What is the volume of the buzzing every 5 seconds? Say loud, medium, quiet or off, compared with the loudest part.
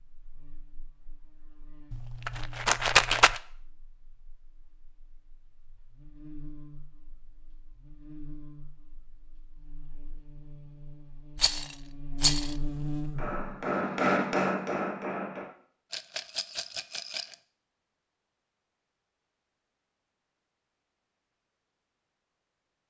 quiet, quiet, loud, off, off.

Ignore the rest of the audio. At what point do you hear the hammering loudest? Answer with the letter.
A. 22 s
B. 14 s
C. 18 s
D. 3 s
B.